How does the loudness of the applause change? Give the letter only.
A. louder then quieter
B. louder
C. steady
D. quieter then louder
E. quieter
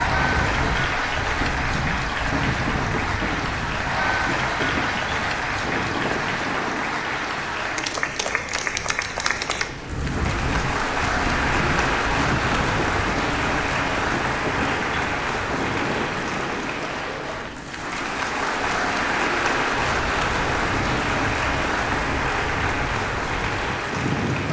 C.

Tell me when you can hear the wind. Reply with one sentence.
You can hear the wind from 0.0 to 24.4 s.